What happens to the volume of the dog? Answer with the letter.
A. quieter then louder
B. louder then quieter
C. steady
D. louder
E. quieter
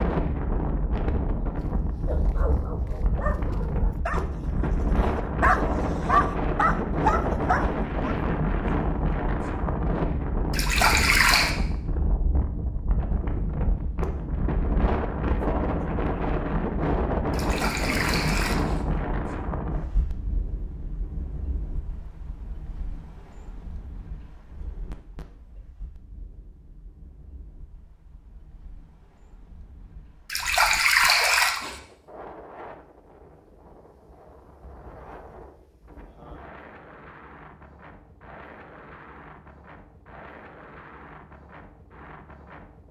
D.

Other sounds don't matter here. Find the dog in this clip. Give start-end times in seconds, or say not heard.
1.6-8.2.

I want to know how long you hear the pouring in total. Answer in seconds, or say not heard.
4 s.